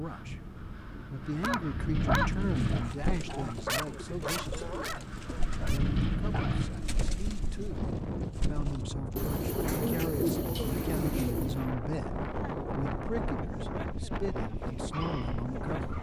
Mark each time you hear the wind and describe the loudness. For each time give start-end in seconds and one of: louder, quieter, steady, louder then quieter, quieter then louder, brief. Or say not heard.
0.0-15.9 steady.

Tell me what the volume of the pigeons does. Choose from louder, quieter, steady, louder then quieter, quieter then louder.
louder.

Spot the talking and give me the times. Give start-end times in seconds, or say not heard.
0.0-4.7, 5.7-15.9.